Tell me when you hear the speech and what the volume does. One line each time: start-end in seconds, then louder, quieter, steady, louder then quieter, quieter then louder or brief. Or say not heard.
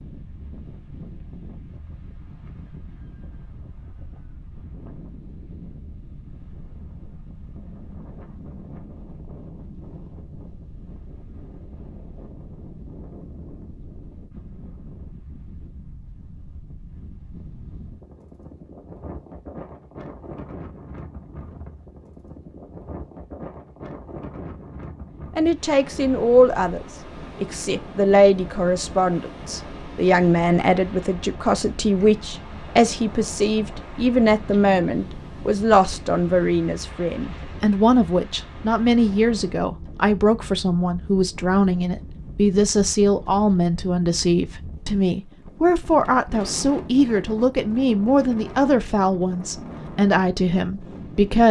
25.4-51.4 steady.